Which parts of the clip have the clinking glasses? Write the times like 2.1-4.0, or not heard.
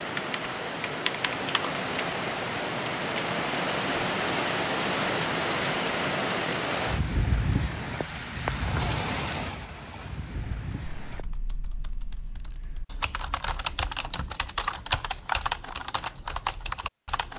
not heard.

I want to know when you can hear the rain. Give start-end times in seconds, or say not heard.
0.0-11.2.